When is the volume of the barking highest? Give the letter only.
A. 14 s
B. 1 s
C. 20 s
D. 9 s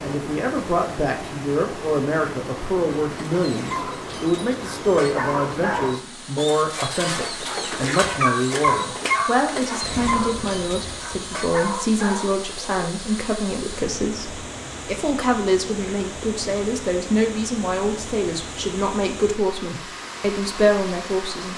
D.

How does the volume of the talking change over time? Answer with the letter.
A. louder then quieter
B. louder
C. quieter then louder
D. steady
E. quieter
D.